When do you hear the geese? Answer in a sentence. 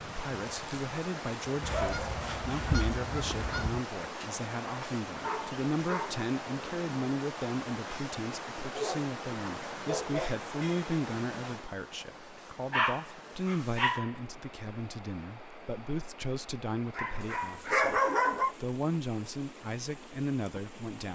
The geese can be heard from 1.6 to 3.8 s.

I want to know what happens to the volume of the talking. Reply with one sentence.
The volume of the talking stays about the same.